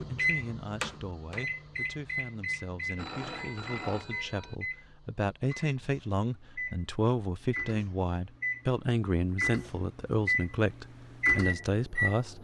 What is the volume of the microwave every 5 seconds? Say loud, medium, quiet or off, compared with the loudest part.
medium, medium, loud.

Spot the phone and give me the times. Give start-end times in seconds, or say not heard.
3.0-4.5.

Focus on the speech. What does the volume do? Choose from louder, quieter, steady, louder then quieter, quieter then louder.
louder.